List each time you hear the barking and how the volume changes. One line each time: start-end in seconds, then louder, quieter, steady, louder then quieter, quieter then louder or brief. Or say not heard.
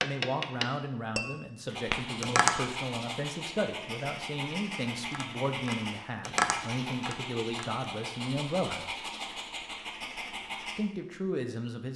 1.6-10.8 steady.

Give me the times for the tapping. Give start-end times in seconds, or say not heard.
0.0-2.5, 5.0-7.8.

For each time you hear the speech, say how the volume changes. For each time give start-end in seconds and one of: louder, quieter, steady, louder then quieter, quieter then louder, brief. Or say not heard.
0.0-8.8 steady
10.8-11.9 brief.